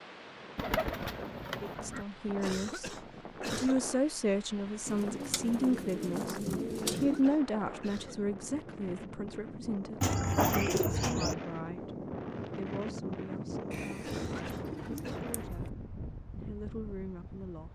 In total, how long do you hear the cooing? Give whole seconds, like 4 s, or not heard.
7 s.